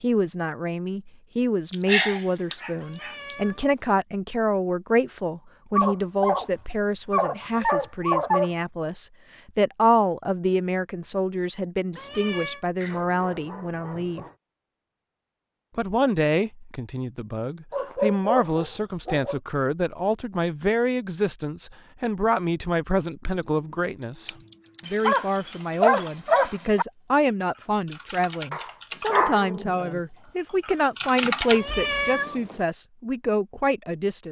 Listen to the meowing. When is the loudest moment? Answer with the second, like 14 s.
32 s.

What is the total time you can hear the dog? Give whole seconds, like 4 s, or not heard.
11 s.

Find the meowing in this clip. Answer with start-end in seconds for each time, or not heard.
2.8-3.9, 11.9-12.7, 31.5-32.6.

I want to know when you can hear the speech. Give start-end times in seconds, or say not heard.
0.0-14.2, 15.8-34.2.